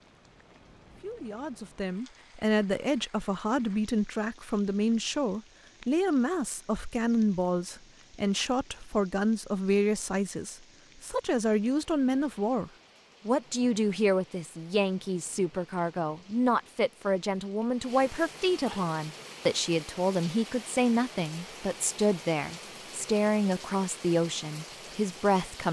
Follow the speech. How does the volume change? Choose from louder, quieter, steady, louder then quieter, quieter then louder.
steady.